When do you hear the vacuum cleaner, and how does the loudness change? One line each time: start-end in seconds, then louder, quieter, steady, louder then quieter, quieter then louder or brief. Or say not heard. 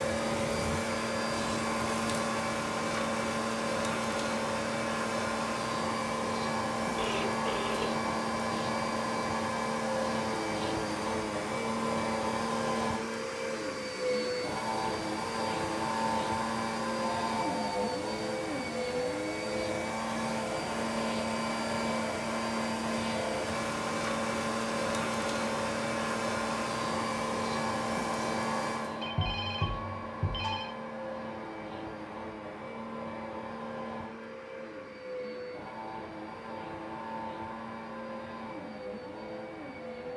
0.0-40.1 quieter.